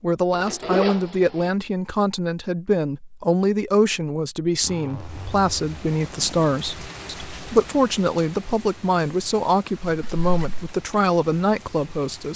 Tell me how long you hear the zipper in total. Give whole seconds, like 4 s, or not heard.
4 s.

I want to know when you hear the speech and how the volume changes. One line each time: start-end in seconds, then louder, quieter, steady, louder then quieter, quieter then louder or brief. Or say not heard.
0.0-12.3 steady.